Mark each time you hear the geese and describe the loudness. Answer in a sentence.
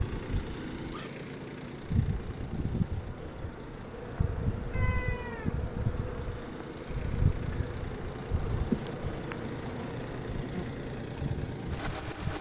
The geese can't be heard in this clip.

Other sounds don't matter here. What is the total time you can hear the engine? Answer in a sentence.
The engine can be heard for 12 seconds in total.